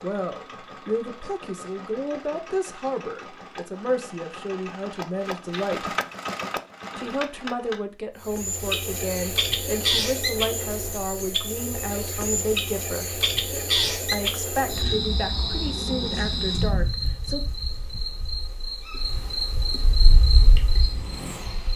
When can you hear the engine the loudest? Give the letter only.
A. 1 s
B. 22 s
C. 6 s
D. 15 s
C.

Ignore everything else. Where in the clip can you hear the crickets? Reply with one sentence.
The crickets can be heard from 8.2 to 21.7 s.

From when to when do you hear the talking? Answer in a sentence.
The talking can be heard from 0.0 to 5.9 s, from 7.0 to 13.1 s and from 14.1 to 17.4 s.